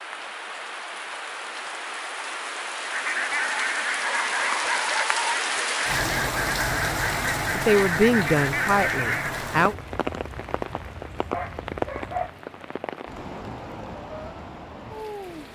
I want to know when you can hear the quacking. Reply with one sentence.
You can hear the quacking from 2.8 to 9.4 s.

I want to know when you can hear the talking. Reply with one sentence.
The talking can be heard from 7.5 to 9.8 s.